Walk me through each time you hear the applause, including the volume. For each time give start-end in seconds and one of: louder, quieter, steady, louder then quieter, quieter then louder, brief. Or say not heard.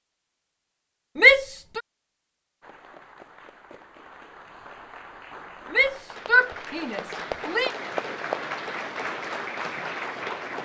2.6-10.6 louder.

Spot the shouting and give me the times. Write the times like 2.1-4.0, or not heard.
1.1-1.8, 5.7-7.7.